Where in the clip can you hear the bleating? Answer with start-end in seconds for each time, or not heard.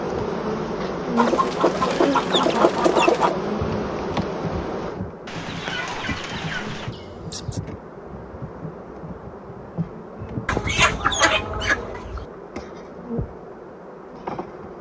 not heard.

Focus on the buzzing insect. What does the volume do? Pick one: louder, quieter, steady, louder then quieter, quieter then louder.
quieter.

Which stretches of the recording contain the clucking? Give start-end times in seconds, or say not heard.
1.1-3.4, 5.2-7.0, 10.4-12.2.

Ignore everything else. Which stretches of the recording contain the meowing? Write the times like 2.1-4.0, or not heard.
6.9-7.6.